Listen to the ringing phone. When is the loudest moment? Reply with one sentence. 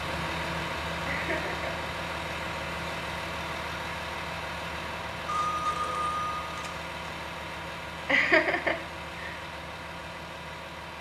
The loudest moment of the ringing phone is at 6 seconds.